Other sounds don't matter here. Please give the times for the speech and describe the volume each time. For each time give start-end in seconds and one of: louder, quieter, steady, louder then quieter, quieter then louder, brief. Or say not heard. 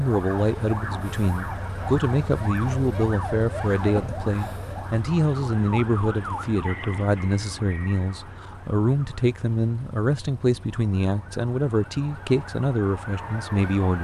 0.0-13.9 steady.